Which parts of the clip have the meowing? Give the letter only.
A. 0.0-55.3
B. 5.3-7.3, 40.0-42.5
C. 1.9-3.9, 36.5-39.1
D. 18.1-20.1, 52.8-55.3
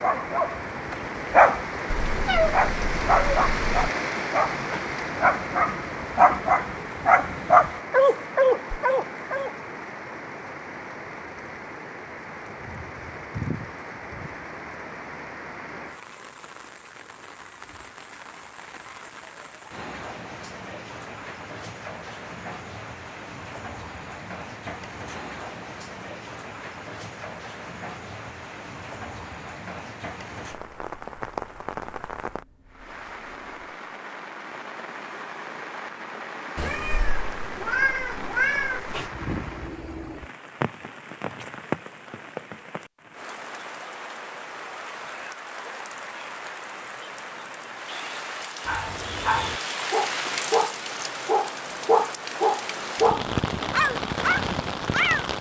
C.